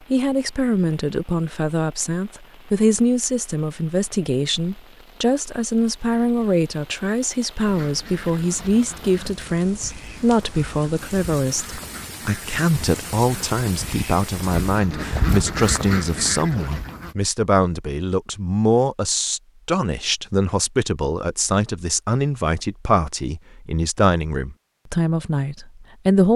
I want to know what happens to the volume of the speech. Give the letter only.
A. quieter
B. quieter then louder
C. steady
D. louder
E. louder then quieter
C.